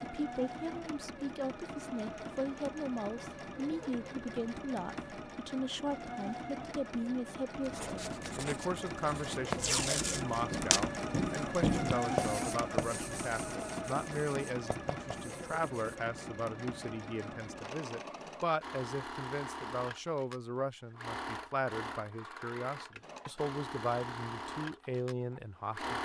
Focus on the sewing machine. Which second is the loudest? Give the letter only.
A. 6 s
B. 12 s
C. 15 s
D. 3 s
B.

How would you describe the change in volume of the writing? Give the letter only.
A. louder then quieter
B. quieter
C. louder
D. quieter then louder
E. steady
A.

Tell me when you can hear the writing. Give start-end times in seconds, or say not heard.
7.6-16.1.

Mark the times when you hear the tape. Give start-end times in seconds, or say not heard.
9.6-10.9.